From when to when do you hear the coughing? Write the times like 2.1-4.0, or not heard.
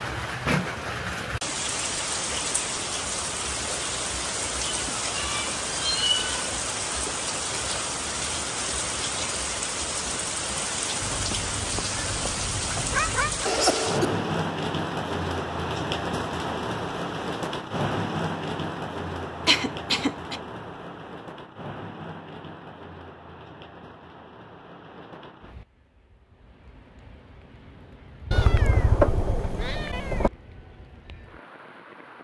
13.4-14.3, 19.4-20.4.